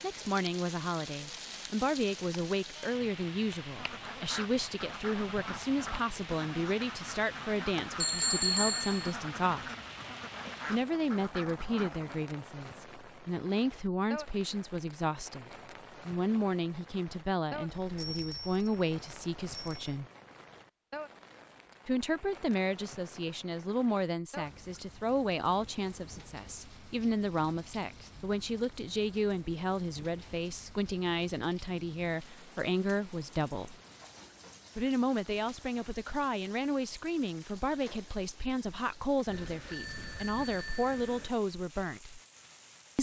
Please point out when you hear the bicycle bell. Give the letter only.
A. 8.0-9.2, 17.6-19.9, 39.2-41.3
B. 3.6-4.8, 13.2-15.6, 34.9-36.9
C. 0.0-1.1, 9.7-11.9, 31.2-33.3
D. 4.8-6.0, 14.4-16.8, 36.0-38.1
A.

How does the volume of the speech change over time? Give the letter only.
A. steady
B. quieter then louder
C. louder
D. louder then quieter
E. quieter
A.